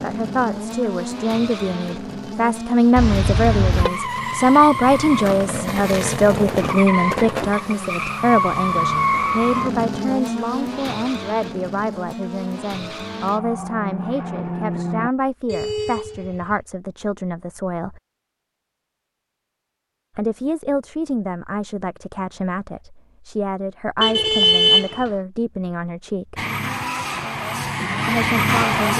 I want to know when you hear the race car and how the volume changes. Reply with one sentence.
You can hear the race car from 0.0 to 15.1 s, getting louder then quieter; and briefly from 26.4 to 28.9 s.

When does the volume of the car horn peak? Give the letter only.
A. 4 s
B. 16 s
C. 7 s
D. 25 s
D.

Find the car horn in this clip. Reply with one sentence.
You can hear the car horn from 3.0 to 3.9 s, from 15.4 to 16.6 s and from 24.0 to 25.1 s.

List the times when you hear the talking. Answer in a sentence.
The talking can be heard from 0.0 to 18.0 s, from 20.1 to 26.4 s and from 28.1 to 28.9 s.